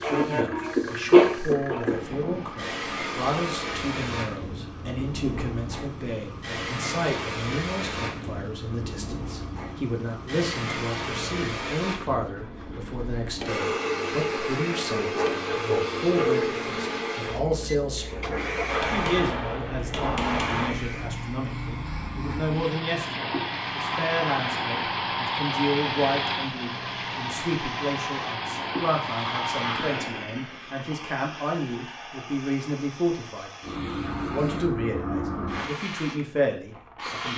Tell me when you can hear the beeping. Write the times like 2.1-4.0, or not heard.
not heard.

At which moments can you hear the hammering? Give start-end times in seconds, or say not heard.
18.6-20.7.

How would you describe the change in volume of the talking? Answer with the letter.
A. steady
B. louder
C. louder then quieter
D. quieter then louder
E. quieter
A.